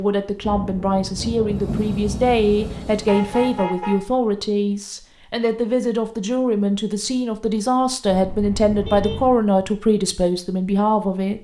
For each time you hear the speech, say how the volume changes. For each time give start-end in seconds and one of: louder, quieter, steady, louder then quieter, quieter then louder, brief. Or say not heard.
0.0-11.3 steady.